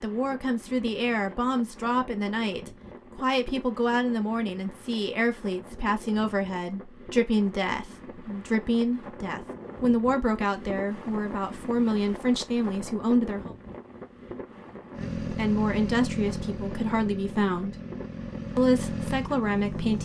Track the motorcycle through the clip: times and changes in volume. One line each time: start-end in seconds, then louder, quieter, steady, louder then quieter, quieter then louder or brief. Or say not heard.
14.9-20.0 quieter then louder.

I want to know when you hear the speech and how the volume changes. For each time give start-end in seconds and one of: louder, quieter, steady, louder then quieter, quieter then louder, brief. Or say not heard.
0.0-13.6 steady
15.0-17.8 brief
18.6-20.0 brief.